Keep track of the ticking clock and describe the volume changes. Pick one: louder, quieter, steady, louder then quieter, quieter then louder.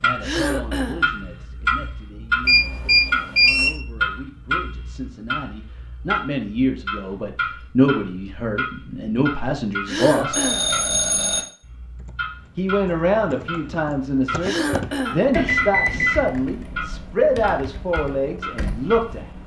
quieter.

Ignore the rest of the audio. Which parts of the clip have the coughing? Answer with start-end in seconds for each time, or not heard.
0.2-1.1, 9.8-10.7, 14.4-15.2.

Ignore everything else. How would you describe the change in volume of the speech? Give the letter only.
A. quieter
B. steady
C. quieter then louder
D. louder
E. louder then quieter
D.